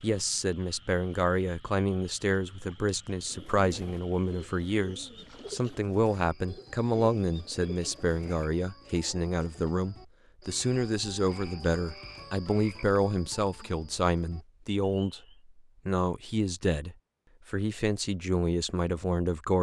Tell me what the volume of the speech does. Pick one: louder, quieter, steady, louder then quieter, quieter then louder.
steady.